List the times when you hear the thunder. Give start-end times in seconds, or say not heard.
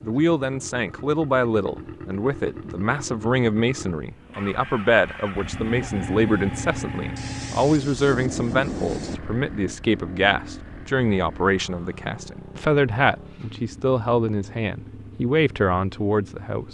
7.2-9.2.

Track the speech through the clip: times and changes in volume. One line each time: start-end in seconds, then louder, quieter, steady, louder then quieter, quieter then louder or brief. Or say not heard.
0.0-16.7 steady.